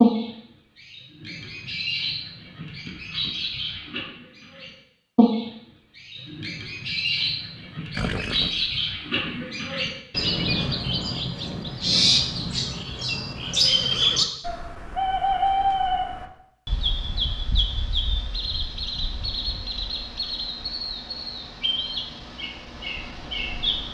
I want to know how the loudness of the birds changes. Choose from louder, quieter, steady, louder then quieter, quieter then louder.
louder then quieter.